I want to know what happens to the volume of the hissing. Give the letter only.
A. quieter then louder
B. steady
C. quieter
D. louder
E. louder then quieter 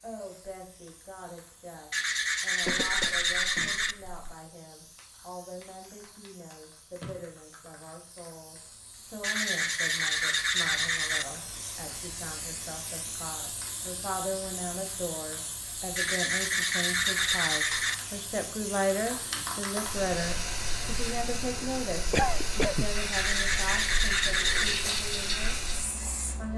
D.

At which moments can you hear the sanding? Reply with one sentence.
The sanding can be heard from 1.9 to 4.0 s, from 9.2 to 11.2 s, from 15.9 to 17.9 s and from 23.1 to 24.9 s.